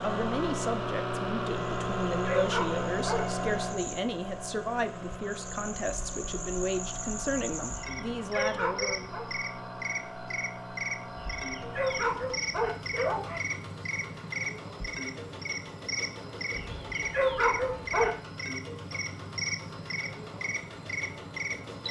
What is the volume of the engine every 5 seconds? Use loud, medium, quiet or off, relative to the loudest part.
loud, medium, medium, medium, medium.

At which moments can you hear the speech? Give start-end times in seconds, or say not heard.
0.0-9.2.